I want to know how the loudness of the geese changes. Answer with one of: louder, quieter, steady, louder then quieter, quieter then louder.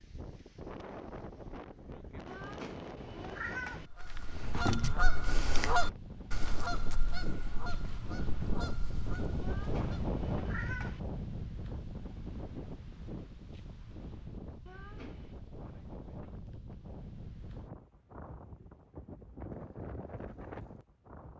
quieter.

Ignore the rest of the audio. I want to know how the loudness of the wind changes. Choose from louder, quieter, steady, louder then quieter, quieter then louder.
louder then quieter.